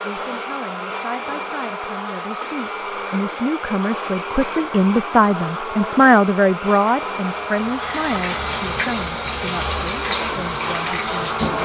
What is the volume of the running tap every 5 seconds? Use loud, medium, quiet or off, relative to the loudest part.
off, loud, loud.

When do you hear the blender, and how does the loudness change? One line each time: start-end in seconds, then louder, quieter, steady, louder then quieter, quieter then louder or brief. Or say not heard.
0.0-11.6 steady.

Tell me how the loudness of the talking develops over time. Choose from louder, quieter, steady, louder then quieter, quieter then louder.
louder then quieter.